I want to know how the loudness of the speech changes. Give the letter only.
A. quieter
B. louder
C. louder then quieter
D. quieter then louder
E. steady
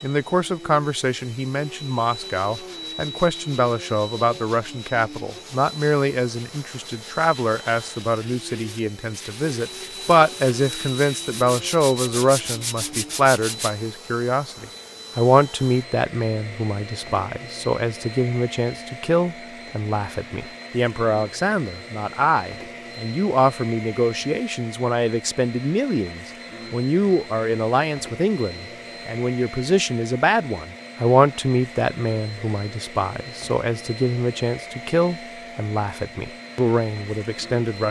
E.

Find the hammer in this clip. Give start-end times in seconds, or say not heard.
not heard.